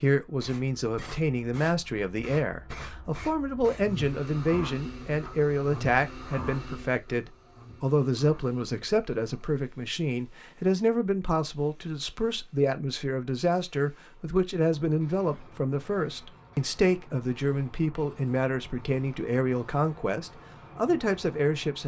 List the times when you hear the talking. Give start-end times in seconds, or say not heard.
0.0-21.8.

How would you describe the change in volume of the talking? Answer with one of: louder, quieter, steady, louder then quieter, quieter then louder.
steady.